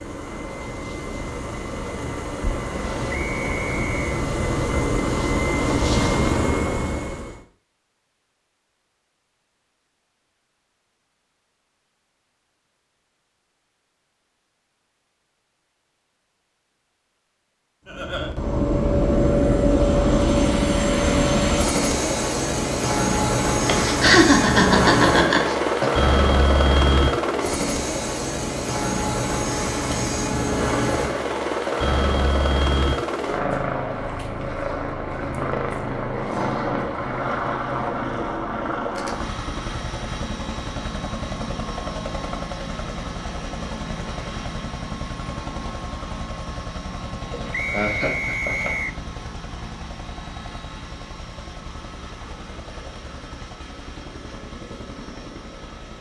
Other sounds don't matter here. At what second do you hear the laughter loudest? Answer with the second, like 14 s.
24 s.